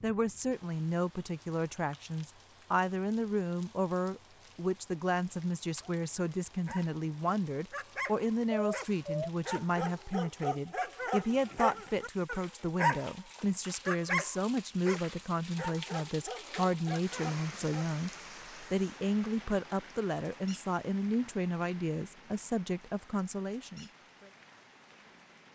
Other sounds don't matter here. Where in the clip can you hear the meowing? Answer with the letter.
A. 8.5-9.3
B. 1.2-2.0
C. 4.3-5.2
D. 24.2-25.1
A.